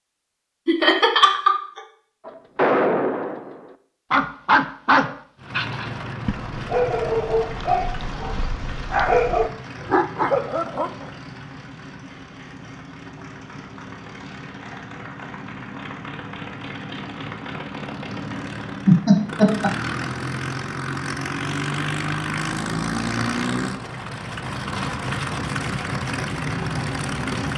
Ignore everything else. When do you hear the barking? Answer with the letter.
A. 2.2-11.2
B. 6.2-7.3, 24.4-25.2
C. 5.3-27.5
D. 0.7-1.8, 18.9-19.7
A.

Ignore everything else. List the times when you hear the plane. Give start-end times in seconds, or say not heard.
5.3-27.5.